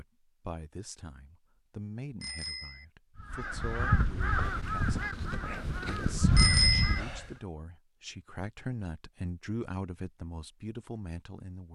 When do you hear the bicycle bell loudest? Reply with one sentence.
The loudest moment of the bicycle bell is at 7 seconds.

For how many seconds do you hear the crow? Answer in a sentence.
You can hear the crow for 4 seconds altogether.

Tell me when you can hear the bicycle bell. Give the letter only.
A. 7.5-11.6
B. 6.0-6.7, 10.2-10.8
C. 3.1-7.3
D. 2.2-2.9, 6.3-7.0
D.